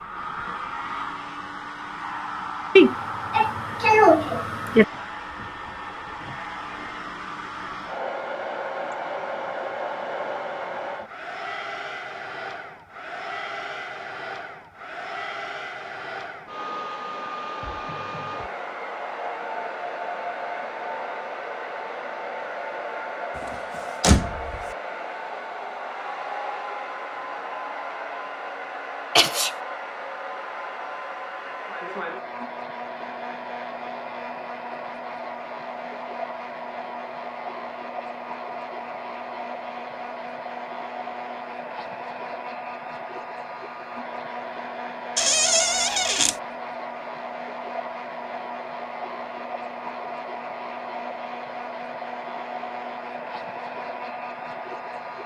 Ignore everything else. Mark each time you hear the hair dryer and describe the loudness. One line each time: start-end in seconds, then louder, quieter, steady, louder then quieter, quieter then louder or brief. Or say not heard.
0.0-55.2 steady.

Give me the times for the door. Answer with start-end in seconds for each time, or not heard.
23.4-24.6, 45.1-46.4.